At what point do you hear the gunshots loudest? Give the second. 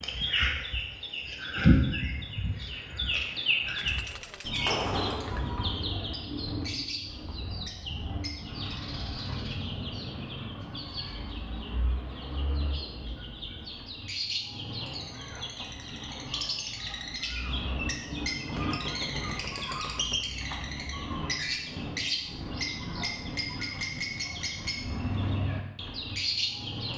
5 s.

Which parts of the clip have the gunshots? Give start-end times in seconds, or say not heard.
3.8-5.5, 18.5-20.2.